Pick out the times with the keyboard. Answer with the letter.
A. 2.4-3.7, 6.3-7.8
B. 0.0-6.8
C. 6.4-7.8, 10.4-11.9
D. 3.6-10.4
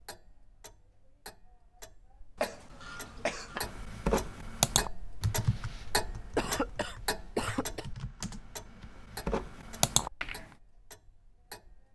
D.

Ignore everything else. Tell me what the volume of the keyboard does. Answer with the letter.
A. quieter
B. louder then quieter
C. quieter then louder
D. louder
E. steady
C.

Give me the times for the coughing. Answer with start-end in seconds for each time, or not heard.
2.4-3.7, 6.3-7.8.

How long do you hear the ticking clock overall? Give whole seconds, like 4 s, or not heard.
12 s.